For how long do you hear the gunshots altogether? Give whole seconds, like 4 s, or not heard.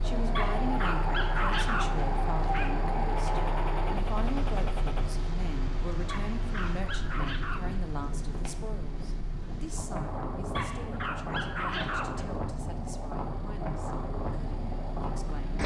2 s.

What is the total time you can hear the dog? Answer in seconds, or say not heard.
6 s.